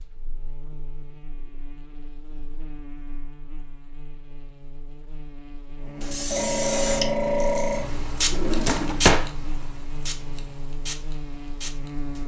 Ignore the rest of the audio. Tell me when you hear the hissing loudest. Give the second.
7 s.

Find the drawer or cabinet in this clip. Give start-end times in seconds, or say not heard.
8.3-9.3.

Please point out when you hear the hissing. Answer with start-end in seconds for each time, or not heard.
6.0-12.2.